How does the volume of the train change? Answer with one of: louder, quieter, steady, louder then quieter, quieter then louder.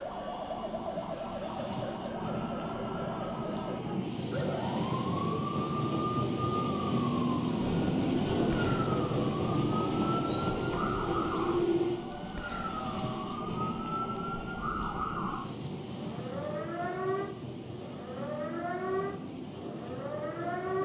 louder then quieter.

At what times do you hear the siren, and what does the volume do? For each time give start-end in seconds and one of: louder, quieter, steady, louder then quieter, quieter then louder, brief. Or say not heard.
0.0-20.8 steady.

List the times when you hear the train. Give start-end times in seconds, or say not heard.
0.0-20.8.